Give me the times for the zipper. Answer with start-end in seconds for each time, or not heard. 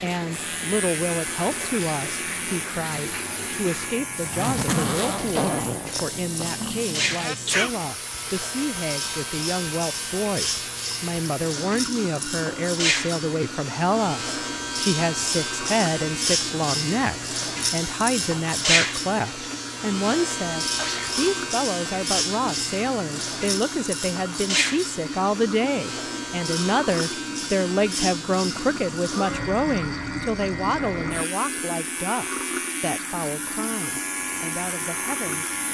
4.2-6.7.